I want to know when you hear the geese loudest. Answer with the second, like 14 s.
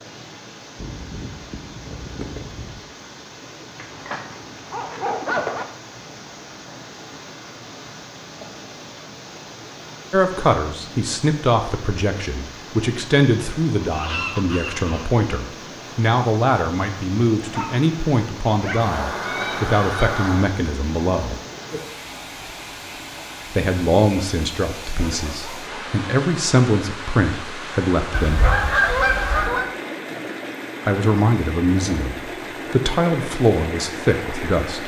29 s.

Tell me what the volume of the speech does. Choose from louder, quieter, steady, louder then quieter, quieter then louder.
steady.